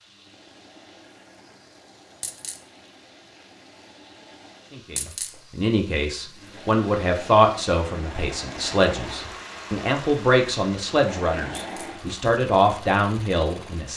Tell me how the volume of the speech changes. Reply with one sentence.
The loudness of the speech stays about the same.